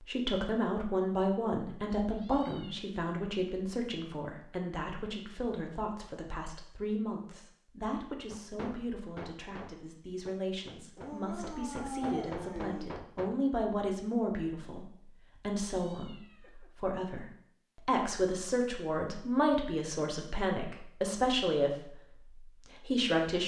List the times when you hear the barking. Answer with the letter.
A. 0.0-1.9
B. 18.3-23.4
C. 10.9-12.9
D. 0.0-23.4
C.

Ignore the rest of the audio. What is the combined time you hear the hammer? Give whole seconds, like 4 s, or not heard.
5 s.